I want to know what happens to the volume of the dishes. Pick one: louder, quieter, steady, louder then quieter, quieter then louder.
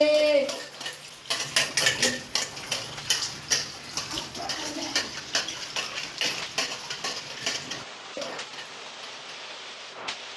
quieter.